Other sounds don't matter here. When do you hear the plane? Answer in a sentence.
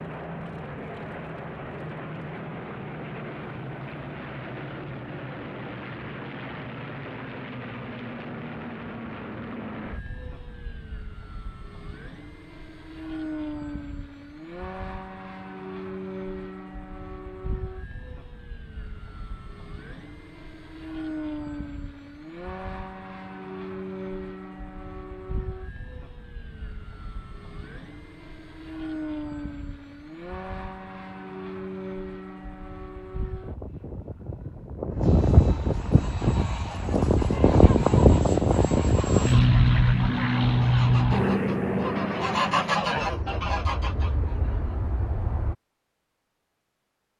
The plane can be heard from 0.0 to 45.5 s.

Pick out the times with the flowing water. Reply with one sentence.
You can't hear the flowing water here.